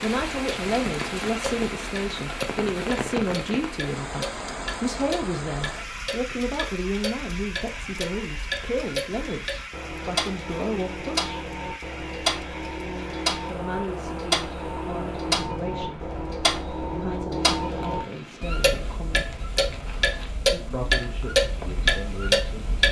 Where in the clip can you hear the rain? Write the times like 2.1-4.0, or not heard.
0.0-22.8.